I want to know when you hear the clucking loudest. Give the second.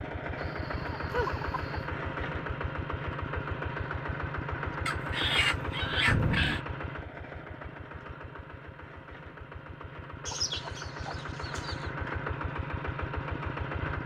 5 s.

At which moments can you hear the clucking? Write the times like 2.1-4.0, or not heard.
0.3-1.9, 4.8-6.6, 10.2-11.9.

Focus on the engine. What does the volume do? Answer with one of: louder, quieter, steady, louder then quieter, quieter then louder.
quieter then louder.